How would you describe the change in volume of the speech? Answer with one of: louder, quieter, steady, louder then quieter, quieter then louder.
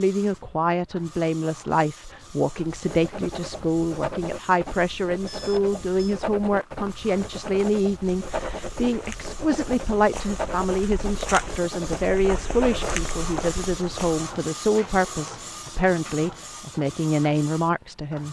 steady.